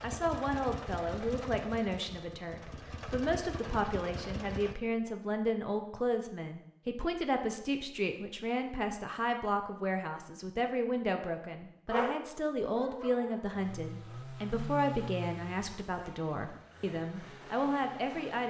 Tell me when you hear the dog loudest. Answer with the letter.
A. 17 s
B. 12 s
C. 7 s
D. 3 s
B.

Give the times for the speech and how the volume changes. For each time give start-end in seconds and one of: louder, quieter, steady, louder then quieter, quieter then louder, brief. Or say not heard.
0.0-18.4 steady.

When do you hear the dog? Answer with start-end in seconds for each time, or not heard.
11.9-13.5.